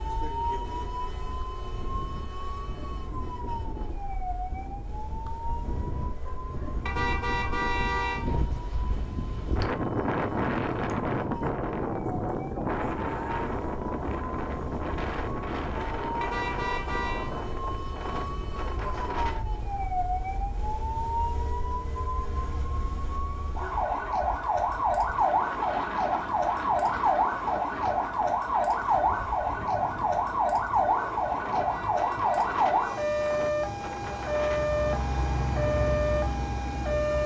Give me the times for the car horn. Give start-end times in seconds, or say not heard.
6.8-8.2, 16.2-17.3, 31.6-33.4.